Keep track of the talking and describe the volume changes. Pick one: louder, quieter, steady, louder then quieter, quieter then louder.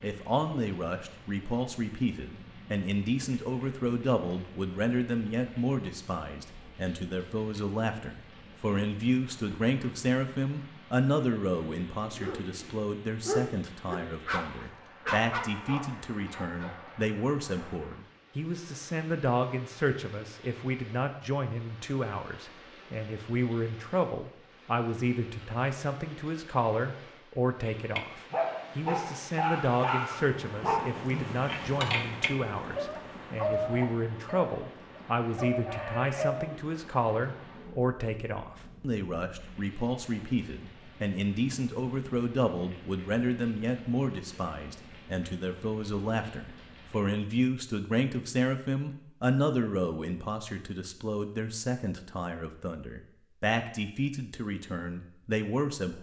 steady.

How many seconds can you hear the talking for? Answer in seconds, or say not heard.
56 s.